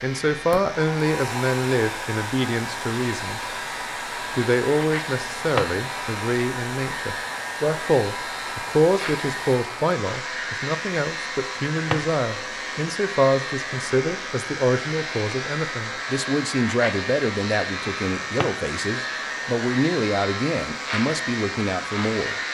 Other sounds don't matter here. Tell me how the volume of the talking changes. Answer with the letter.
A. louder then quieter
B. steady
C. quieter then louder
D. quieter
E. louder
B.